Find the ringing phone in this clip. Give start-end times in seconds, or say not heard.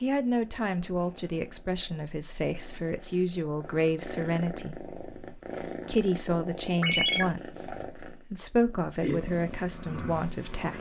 6.8-7.2.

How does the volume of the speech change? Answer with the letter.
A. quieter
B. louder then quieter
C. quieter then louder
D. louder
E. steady
E.